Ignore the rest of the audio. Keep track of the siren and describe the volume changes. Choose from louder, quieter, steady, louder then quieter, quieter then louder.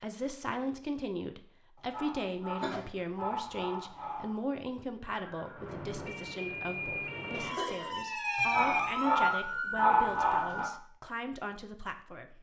louder.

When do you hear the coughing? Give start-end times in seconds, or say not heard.
2.6-3.2, 7.3-8.1.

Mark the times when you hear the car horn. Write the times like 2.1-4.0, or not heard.
not heard.